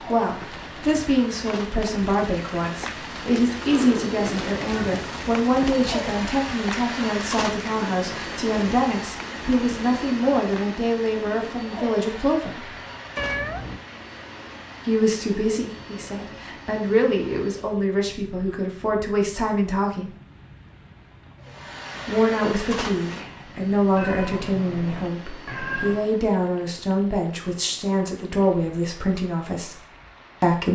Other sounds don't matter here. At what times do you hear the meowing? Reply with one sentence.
The meowing can be heard from 3.2 to 4.9 s, from 13.2 to 13.8 s and from 23.9 to 26.1 s.